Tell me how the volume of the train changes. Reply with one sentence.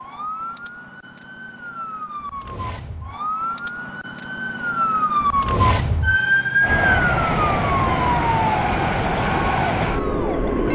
The loudness of the train stays about the same.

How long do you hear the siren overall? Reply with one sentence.
The siren can be heard for 11 seconds in total.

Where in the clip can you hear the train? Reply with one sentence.
The train can be heard from 6.6 to 10.7 s.